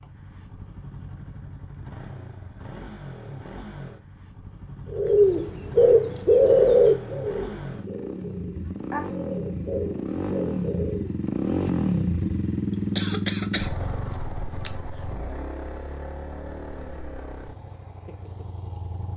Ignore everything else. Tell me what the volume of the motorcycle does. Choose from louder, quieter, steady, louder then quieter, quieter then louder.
louder then quieter.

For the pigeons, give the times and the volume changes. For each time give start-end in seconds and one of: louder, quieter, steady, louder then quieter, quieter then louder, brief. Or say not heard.
4.9-11.2 quieter then louder.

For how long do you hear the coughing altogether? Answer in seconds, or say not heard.
2 s.